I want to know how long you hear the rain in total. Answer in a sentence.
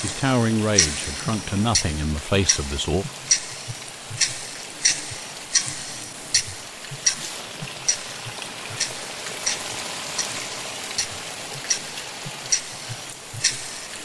The rain can be heard for 14 seconds in total.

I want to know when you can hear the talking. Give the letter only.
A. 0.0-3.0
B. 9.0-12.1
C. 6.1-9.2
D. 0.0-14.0
A.